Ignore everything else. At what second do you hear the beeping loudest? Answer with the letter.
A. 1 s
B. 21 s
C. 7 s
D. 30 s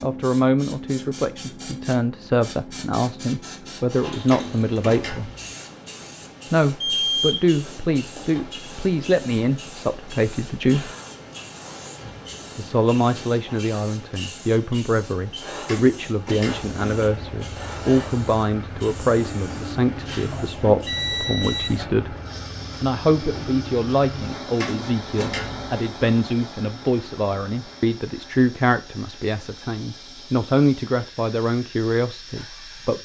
C.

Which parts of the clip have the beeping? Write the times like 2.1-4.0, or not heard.
6.8-7.5, 20.3-21.8.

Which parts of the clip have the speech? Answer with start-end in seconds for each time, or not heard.
0.0-5.3, 6.5-10.9, 12.6-22.1, 22.8-33.0.